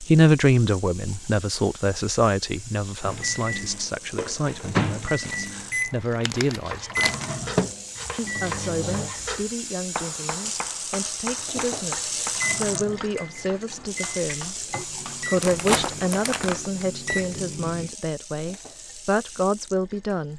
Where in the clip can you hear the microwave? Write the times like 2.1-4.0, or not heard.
3.0-9.1, 12.3-17.9.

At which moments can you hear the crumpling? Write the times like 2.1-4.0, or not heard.
5.2-7.2, 15.4-17.2.